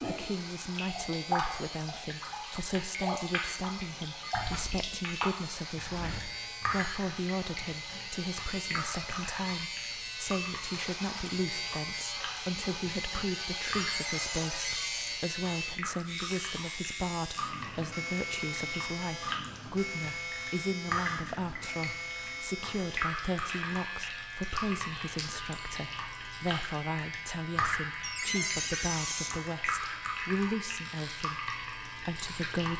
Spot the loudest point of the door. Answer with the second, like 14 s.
28 s.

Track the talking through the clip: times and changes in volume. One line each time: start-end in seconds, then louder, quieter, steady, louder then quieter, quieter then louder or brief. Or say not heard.
0.0-32.7 steady.